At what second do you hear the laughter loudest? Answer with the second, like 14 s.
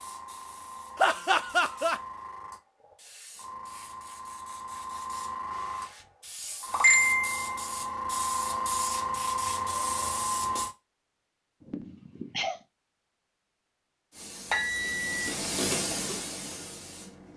1 s.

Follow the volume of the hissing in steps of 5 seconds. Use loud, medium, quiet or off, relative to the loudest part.
quiet, loud, medium, medium.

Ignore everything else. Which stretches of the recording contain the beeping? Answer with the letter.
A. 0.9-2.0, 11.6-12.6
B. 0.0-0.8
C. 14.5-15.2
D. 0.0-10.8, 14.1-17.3
C.